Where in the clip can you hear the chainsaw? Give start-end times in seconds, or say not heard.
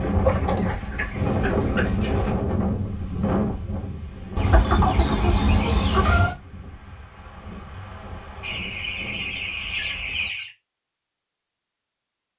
not heard.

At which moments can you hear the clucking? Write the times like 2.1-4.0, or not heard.
0.2-2.4, 4.3-6.3, 8.4-10.5.